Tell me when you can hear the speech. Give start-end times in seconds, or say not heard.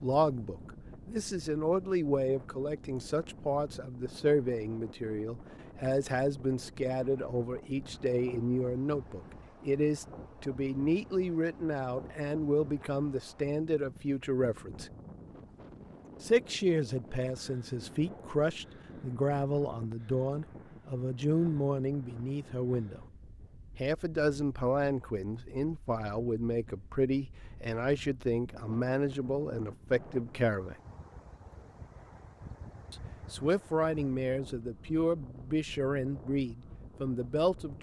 0.0-14.9, 16.2-23.1, 23.8-30.8, 32.9-37.7.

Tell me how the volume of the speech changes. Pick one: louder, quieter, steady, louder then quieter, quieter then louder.
steady.